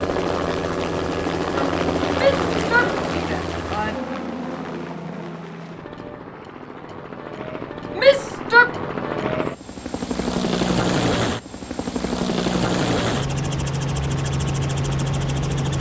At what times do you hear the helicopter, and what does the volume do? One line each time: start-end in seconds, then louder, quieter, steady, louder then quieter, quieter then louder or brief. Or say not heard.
0.0-15.7 quieter then louder.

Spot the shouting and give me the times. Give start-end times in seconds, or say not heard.
2.1-4.0, 8.0-8.7.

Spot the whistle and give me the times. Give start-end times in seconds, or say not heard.
not heard.